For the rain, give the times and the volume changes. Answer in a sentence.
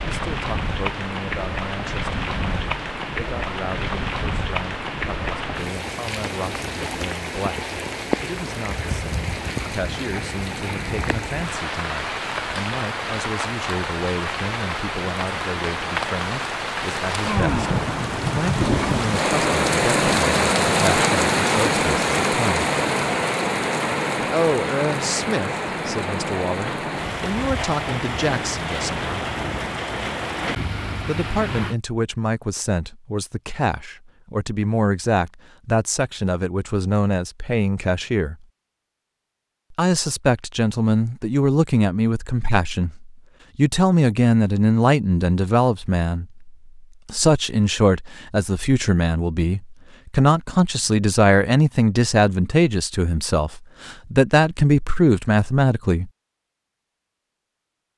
The rain can be heard from 0.0 to 31.8 s, getting louder then quieter.